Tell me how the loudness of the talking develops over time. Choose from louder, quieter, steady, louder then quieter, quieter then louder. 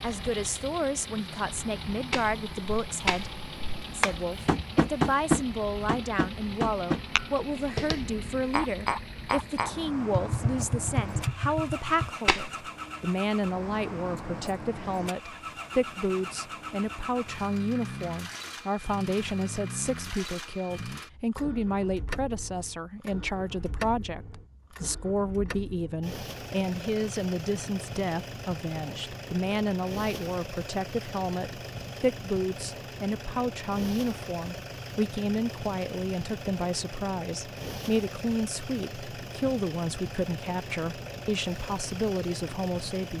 steady.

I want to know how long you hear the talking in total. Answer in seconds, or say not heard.
43 s.